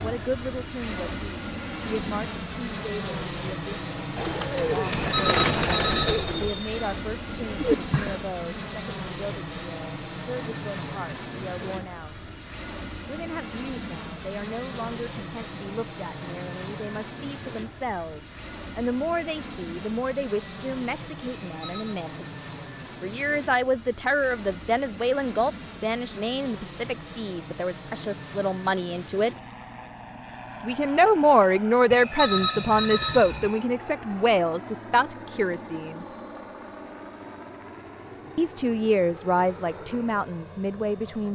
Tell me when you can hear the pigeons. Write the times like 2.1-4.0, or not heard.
4.2-8.2.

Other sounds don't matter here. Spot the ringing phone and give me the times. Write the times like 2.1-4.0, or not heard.
4.8-6.3, 21.3-21.9, 31.9-33.6.